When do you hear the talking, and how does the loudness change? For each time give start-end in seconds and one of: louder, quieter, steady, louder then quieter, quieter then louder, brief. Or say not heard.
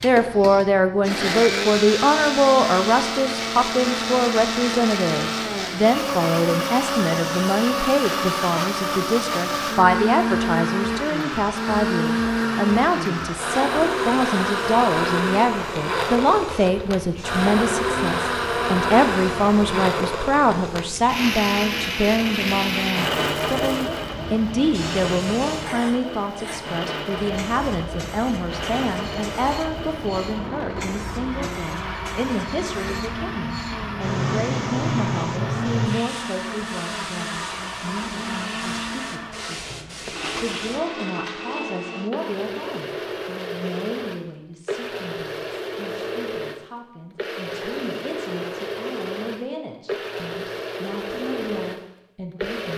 0.0-52.7 quieter.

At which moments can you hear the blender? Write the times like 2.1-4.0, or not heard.
0.0-52.7.